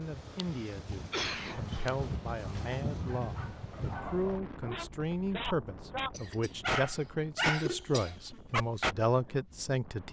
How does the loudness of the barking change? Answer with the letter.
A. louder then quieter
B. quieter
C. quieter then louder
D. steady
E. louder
A.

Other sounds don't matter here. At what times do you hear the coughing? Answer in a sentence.
The coughing can be heard from 0.3 to 1.9 s, from 6.1 to 6.5 s and from 7.4 to 8.4 s.